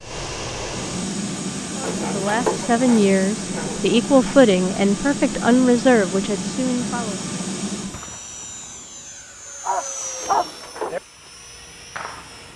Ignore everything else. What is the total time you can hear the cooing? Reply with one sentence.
The cooing can be heard for 2 seconds in total.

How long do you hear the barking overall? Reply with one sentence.
You can hear the barking for 4 seconds altogether.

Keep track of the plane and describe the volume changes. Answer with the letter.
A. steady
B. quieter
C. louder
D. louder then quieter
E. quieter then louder
B.